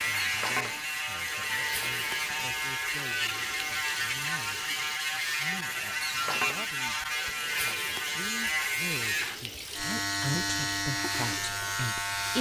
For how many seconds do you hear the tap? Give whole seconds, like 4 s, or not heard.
12 s.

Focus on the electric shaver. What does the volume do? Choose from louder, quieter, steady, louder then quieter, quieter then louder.
steady.